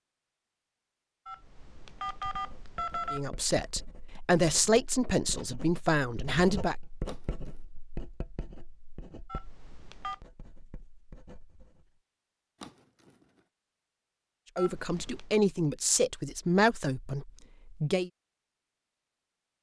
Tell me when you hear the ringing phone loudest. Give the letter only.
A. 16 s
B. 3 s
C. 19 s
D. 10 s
B.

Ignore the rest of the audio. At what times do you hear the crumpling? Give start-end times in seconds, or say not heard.
7.0-7.7, 12.6-13.4.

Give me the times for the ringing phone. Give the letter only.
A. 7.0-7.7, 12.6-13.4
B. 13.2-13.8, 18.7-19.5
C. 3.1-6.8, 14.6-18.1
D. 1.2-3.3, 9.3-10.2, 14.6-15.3
D.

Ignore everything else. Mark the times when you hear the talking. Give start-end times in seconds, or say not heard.
3.1-6.8, 14.6-18.1.